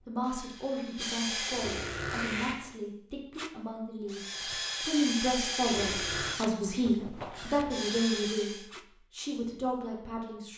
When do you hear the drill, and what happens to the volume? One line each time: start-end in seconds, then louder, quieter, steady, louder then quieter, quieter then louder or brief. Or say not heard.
0.0-1.9 brief
4.0-8.7 quieter then louder.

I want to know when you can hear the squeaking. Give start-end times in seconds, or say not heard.
1.2-2.6, 5.5-6.3.